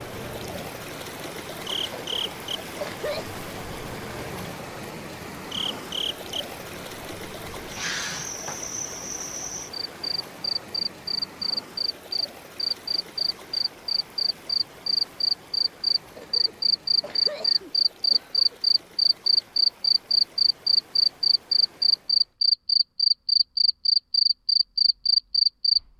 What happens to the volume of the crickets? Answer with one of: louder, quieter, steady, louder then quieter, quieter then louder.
louder.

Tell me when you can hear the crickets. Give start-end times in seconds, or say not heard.
0.0-25.8.